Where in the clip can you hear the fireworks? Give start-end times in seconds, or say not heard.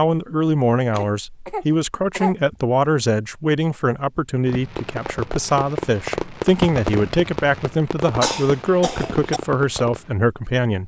4.5-10.2.